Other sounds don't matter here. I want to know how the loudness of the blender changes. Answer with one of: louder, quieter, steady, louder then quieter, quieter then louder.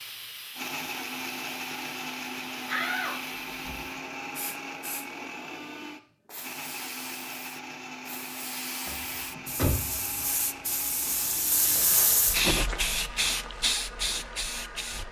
quieter.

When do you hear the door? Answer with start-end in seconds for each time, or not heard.
2.6-3.8, 8.8-10.2.